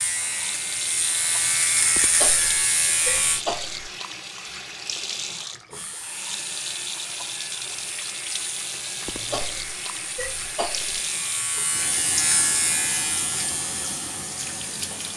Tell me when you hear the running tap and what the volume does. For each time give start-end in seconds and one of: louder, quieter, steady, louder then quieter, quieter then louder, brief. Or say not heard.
0.0-15.1 steady.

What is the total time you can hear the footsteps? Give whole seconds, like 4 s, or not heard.
not heard.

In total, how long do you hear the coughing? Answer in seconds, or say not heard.
4 s.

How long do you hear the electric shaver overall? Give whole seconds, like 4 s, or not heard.
13 s.